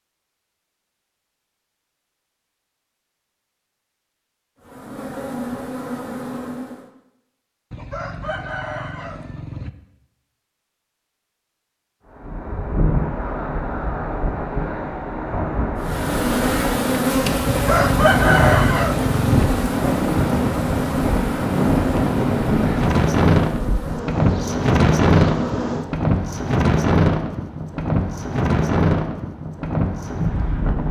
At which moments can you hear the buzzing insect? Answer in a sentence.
The buzzing insect can be heard from 4.6 to 6.9 s and from 15.8 to 26.1 s.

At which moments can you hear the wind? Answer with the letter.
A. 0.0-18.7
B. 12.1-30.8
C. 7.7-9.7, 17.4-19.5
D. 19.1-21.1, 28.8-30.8
B.